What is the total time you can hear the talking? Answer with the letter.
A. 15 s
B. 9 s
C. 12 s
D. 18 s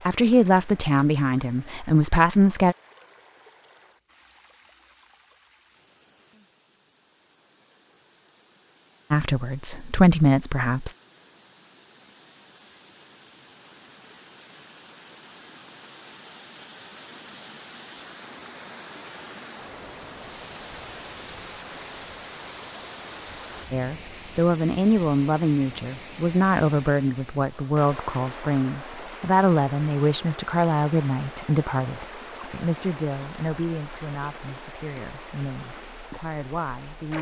D.